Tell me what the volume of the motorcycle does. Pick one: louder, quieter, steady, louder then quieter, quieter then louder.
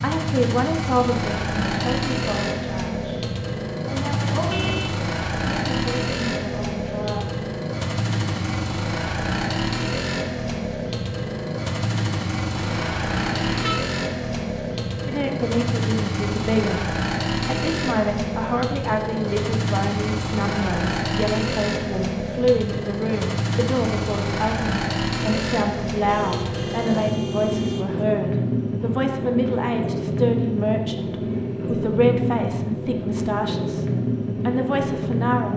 steady.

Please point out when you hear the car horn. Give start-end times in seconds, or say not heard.
4.3-4.9, 12.6-13.8, 26.1-28.1.